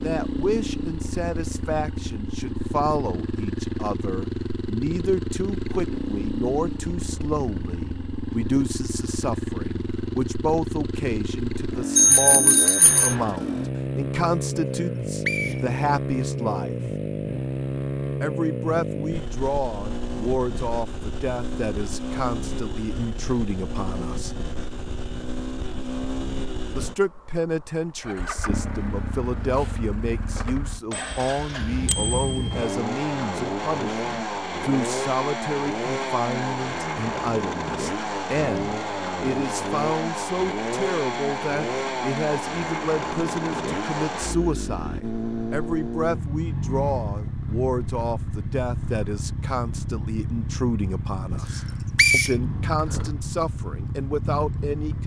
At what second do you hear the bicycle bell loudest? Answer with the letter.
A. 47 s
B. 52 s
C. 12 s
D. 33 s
C.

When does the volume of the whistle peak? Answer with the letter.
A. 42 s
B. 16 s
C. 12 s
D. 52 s
D.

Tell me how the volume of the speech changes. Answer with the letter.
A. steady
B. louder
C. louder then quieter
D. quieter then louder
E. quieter
A.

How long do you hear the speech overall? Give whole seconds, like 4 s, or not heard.
51 s.